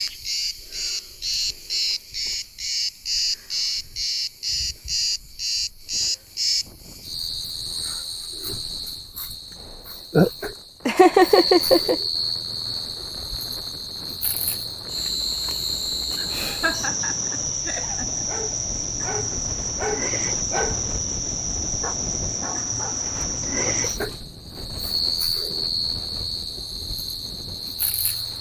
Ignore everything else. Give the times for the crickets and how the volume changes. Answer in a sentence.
The crickets can be heard from 0.0 to 28.3 s, at a steady volume.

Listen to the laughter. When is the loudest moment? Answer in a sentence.
The loudest moment of the laughter is at 11 seconds.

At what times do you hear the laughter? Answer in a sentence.
You can hear the laughter from 10.8 to 12.0 s and from 16.1 to 18.2 s.